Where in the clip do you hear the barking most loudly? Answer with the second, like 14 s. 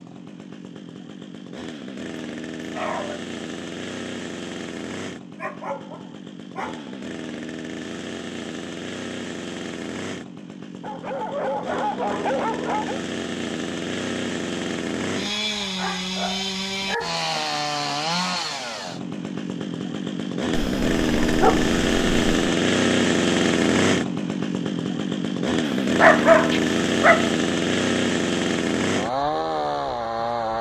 26 s.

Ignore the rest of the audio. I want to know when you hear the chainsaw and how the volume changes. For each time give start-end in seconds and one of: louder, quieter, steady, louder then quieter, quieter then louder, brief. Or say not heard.
0.0-30.5 louder.